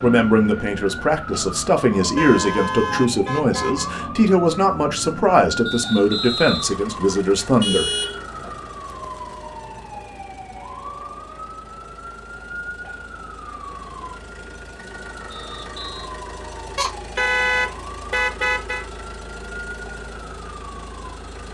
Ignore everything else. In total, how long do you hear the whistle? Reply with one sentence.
You can hear the whistle for 2 seconds altogether.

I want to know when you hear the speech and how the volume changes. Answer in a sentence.
You can hear the speech from 0.0 to 7.9 s, at a steady volume.